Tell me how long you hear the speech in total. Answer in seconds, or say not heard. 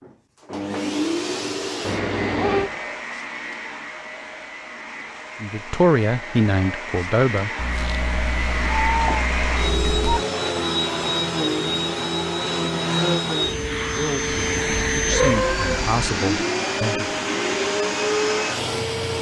5 s.